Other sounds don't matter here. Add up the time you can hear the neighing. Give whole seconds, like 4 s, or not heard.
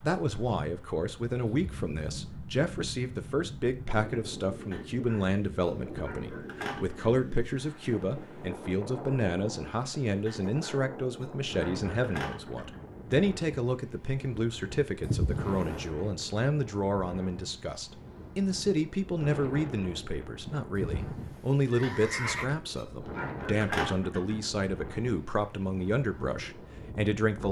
3 s.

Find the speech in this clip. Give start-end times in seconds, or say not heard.
0.0-27.4.